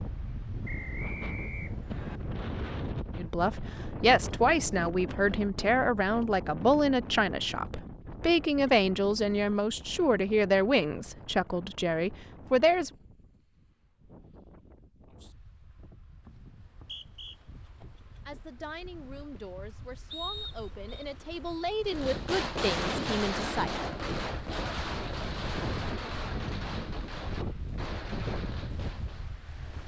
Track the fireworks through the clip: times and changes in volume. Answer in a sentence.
The fireworks can be heard from 21.9 to 29.4 s, getting quieter.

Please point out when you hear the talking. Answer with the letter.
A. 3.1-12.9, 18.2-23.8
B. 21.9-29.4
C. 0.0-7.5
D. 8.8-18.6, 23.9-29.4
A.